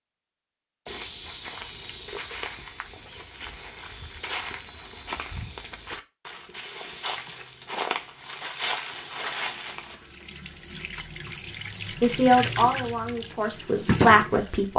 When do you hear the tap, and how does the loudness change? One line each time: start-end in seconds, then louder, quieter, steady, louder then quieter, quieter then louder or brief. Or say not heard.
8.2-14.7 louder.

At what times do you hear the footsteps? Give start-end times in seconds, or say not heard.
0.8-9.9.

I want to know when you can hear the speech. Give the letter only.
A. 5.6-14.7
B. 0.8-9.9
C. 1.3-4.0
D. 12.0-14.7
D.